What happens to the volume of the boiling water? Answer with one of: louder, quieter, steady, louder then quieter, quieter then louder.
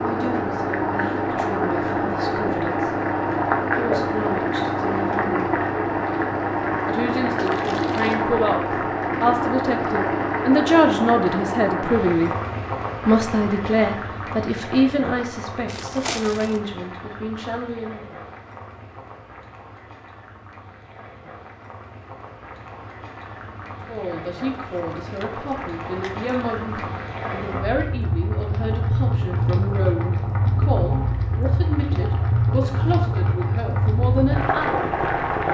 quieter then louder.